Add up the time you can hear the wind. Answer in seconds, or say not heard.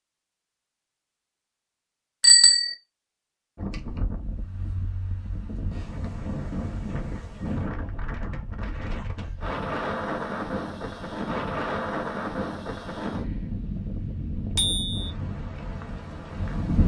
13 s.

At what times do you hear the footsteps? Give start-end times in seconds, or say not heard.
not heard.